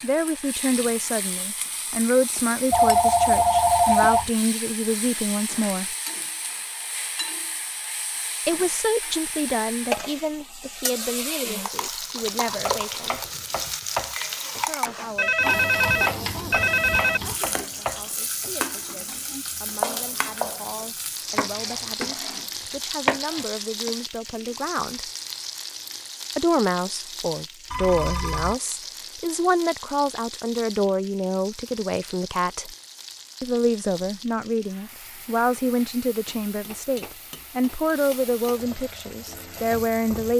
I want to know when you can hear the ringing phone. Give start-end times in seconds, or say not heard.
2.7-4.3, 15.2-17.2, 27.7-28.6.